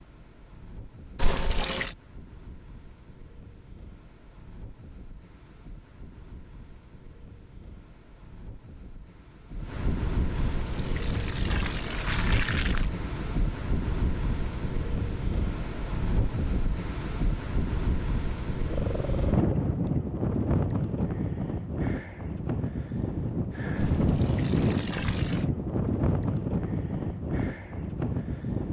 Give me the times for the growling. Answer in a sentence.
You can hear the growling from 18.7 to 19.6 s.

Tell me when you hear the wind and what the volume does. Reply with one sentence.
You can hear the wind from 0.0 to 28.6 s, getting louder.